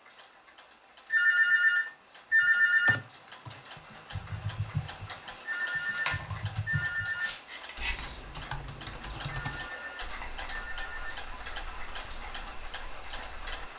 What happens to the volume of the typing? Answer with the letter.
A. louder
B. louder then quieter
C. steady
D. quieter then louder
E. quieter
E.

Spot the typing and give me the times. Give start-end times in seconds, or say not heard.
2.4-13.7.